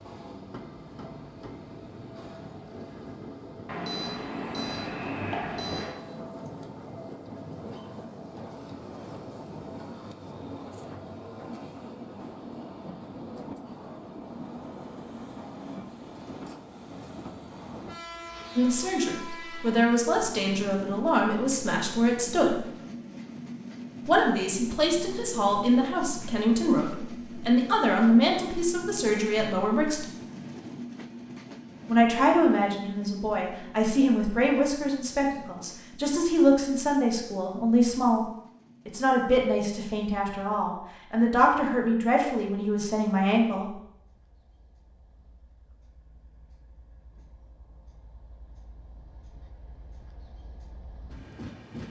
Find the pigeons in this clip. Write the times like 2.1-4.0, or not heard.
not heard.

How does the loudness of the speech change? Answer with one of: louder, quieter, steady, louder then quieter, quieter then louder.
steady.